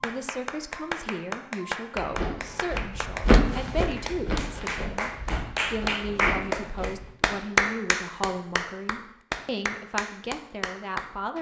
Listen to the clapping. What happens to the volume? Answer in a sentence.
The loudness of the clapping goes up, then down.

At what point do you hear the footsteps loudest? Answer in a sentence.
The volume of the footsteps peaks at 3 seconds.